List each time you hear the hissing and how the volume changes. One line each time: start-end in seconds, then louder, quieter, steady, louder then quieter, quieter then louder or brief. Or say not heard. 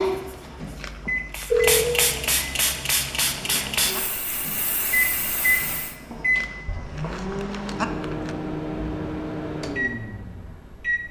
0.0-6.0 louder then quieter.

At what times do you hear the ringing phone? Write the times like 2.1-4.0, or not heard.
1.1-1.9, 6.7-7.3.